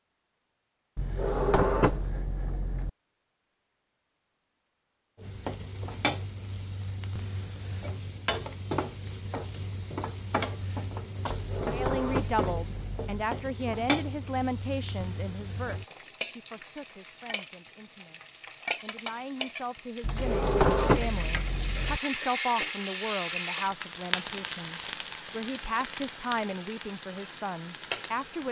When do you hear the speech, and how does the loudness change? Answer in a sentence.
The speech can be heard from 11.7 to 28.4 s, getting quieter then louder.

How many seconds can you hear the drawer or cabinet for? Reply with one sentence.
The drawer or cabinet can be heard for 6 seconds in total.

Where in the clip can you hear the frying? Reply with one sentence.
You can hear the frying from 5.2 to 28.4 s.